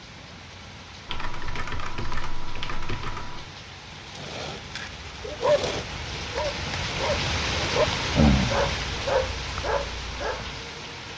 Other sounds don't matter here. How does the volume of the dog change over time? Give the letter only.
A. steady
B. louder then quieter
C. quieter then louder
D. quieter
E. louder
B.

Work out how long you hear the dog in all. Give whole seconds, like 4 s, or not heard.
5 s.